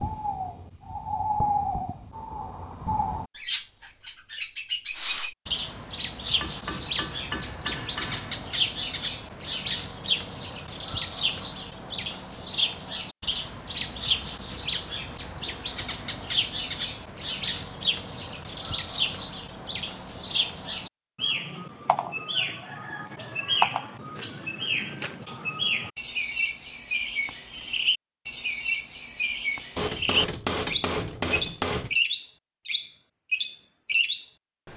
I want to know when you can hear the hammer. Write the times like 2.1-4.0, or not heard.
6.4-8.3, 29.8-31.9.